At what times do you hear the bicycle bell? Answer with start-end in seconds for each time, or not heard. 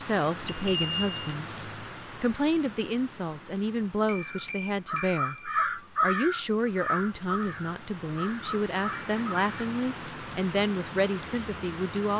0.5-1.1, 4.0-5.5, 8.8-9.9.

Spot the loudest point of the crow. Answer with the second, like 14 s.
6 s.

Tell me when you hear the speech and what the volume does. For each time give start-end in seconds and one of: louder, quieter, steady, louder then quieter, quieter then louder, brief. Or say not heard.
0.0-12.1 steady.